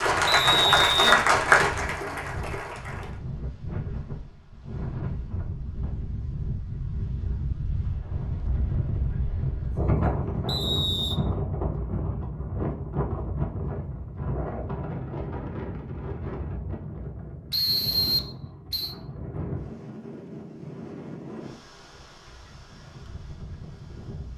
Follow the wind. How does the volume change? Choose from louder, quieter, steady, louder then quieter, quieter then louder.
louder then quieter.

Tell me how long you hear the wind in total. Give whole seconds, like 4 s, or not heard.
24 s.